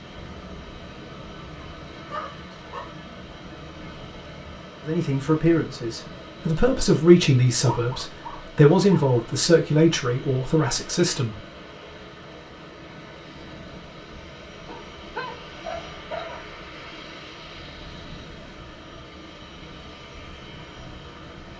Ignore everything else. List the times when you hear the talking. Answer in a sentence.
The talking can be heard from 4.8 to 11.3 s.